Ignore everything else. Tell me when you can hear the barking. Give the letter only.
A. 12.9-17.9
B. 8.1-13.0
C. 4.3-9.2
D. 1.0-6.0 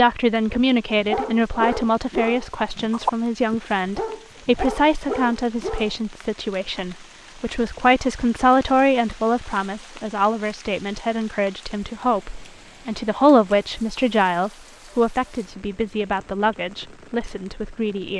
D.